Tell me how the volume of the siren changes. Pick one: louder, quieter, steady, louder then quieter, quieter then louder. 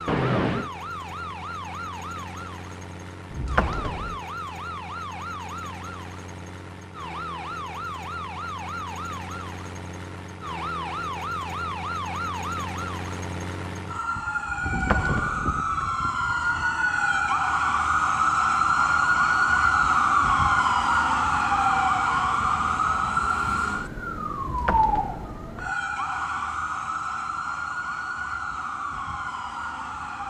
louder then quieter.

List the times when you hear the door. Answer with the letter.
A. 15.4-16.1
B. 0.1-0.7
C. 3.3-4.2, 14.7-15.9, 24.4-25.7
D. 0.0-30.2
C.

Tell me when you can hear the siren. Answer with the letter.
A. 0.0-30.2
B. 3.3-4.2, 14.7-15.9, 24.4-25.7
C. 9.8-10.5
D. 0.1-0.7
A.